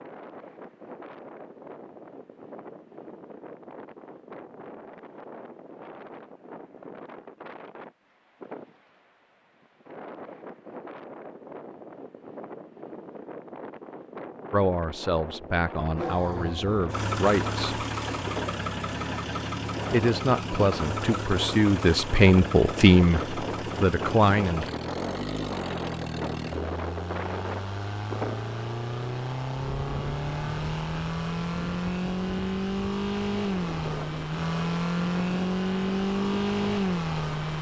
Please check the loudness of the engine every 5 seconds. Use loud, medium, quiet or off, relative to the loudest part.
off, off, off, medium, medium, medium, loud, loud.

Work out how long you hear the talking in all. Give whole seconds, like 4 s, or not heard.
8 s.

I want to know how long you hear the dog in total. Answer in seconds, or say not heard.
not heard.